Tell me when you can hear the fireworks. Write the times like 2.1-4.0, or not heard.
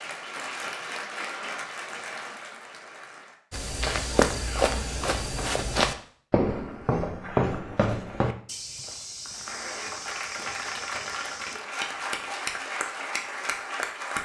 not heard.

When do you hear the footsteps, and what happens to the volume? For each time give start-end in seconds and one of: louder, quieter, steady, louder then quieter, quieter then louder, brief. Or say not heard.
3.5-11.6 quieter.